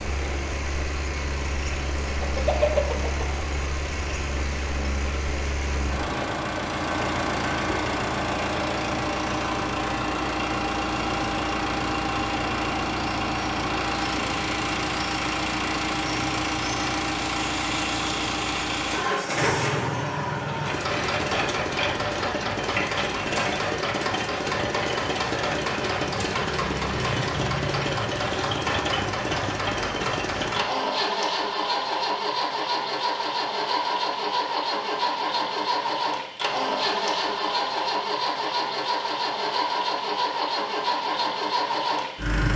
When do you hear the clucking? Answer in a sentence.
You can hear the clucking from 2.2 to 3.5 s.